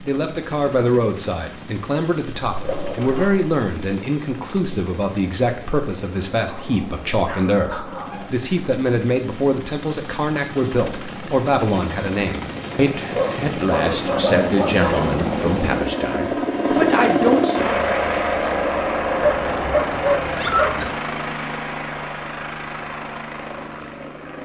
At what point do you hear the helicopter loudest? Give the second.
17 s.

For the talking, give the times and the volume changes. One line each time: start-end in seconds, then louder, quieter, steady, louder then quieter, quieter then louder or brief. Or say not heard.
0.0-17.7 steady.